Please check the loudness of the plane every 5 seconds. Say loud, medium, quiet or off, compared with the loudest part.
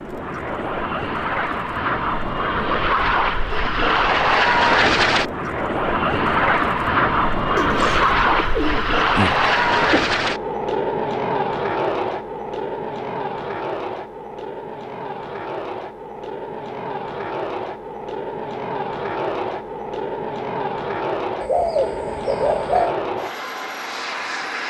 loud, loud, medium, medium, medium.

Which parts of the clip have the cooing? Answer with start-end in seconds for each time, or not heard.
7.5-10.2, 21.4-22.9.